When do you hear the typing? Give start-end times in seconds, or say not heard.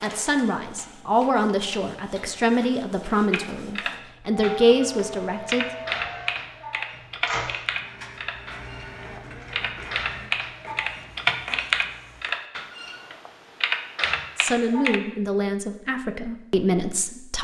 3.3-15.0.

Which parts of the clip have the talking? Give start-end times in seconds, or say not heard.
0.0-5.7, 14.3-17.3.